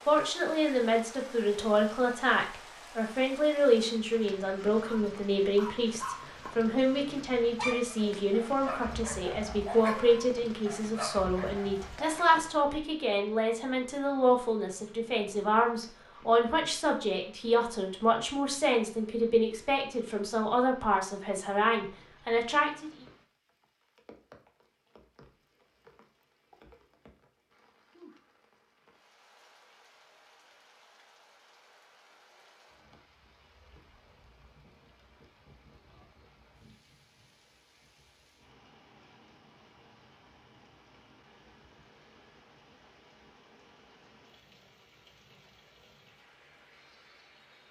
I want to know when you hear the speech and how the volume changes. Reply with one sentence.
You can hear the speech from 0.1 to 22.9 s, at a steady volume.